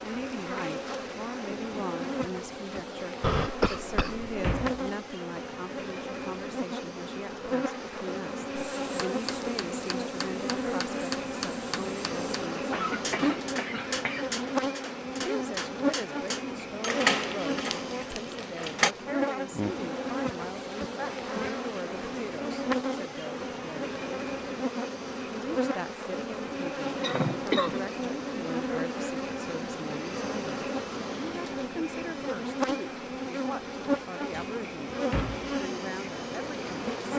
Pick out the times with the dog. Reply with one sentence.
You can't hear the dog here.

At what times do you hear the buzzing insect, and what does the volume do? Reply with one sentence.
The buzzing insect can be heard from 0.0 to 37.1 s, at a steady volume.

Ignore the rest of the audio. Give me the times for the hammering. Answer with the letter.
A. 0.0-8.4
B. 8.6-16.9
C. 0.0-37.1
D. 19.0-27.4
B.